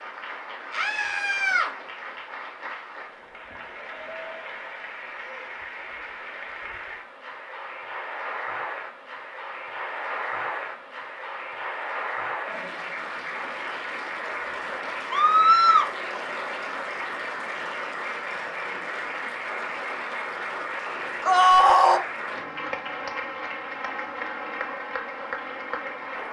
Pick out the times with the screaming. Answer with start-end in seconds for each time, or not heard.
0.7-1.7, 15.1-15.9, 21.2-22.0.